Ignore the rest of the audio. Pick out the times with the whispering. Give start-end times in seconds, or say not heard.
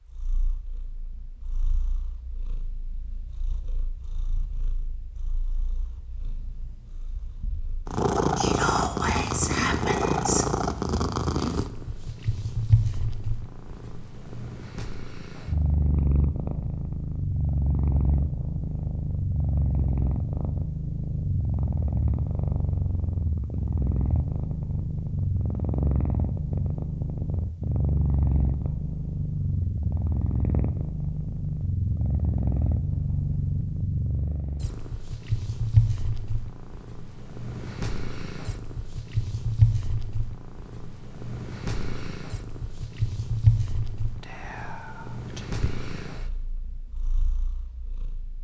8.3-10.5, 44.2-46.1.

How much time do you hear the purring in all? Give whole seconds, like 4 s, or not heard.
48 s.